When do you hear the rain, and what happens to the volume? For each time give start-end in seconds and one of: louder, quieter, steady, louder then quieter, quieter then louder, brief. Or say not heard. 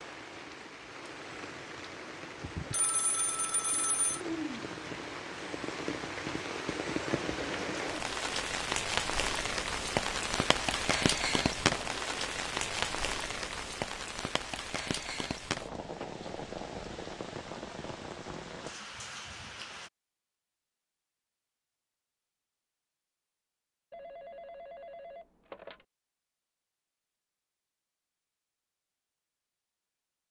0.0-19.9 louder then quieter.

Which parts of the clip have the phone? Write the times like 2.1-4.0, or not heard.
2.7-4.2, 23.9-25.9.